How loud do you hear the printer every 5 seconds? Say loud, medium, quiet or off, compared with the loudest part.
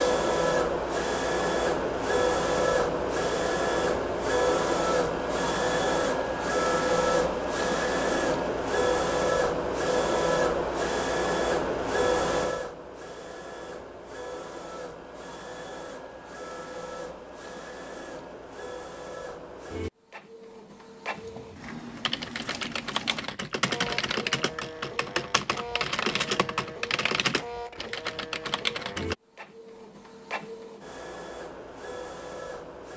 loud, loud, loud, quiet, quiet, quiet, quiet.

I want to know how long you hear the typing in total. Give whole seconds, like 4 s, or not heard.
8 s.